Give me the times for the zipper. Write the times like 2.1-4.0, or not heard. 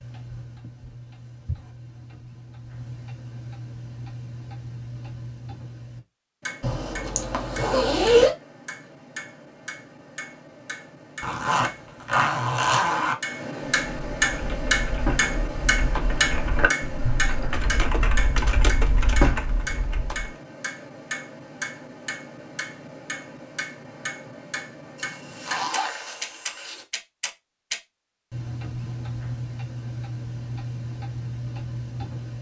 6.6-8.3, 11.2-13.2, 24.9-26.9.